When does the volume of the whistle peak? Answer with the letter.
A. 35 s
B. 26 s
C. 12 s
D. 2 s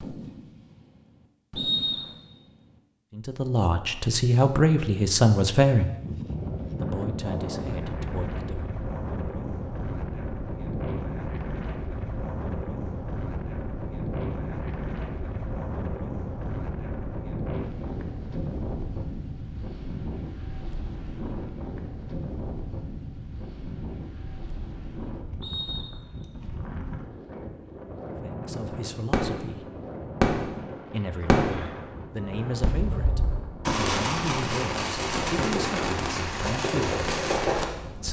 D.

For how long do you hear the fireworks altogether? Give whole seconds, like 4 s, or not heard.
12 s.